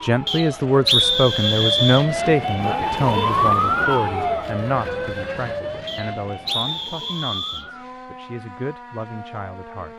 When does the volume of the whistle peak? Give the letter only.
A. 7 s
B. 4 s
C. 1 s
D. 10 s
C.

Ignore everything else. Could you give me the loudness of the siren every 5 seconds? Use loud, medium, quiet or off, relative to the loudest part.
loud, medium.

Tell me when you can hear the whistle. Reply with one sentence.
The whistle can be heard from 0.2 to 2.0 s and from 5.8 to 7.7 s.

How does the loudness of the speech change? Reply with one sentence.
The loudness of the speech goes down.